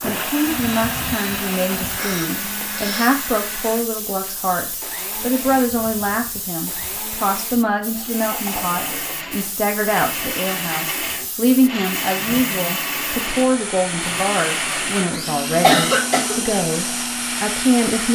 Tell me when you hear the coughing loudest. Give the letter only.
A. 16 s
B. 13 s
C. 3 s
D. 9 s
A.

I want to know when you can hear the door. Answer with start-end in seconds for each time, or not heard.
not heard.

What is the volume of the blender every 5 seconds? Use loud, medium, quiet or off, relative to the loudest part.
loud, medium, loud, loud.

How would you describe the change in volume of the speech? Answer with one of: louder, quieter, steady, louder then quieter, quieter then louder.
steady.